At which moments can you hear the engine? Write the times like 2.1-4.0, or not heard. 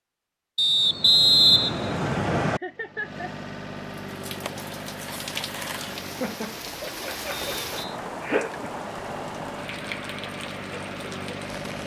2.5-6.4, 8.8-11.8.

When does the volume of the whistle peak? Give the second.
1 s.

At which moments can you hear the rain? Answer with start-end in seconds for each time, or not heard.
3.9-11.8.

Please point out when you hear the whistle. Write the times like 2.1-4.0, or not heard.
0.6-2.6, 7.5-8.0.